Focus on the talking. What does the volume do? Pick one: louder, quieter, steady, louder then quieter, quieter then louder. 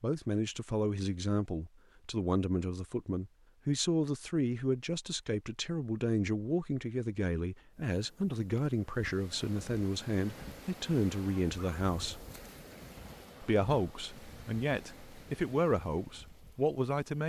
steady.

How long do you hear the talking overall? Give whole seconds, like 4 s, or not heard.
16 s.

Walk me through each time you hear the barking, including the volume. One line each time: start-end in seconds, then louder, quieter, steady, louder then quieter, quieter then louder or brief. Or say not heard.
not heard.